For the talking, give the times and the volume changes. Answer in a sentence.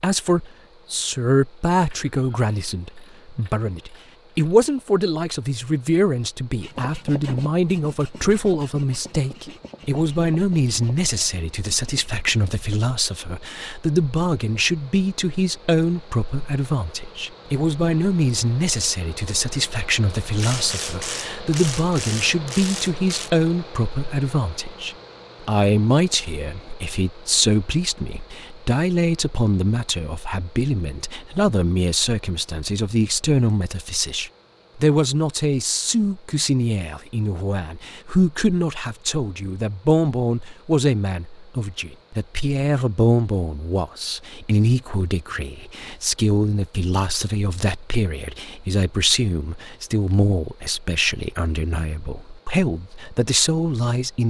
The talking can be heard from 0.0 to 54.2 s, at a steady volume.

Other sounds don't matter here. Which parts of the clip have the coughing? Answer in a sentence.
You can't hear the coughing here.